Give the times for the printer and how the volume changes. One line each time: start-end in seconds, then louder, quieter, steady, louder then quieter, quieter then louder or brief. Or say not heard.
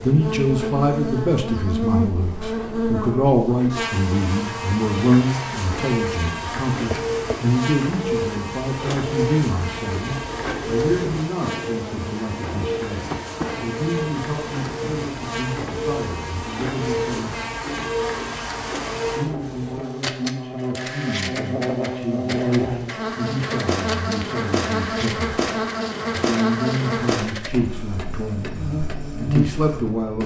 0.0-30.2 louder then quieter.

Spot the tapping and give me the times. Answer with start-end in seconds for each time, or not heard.
6.9-7.3, 13.1-13.5.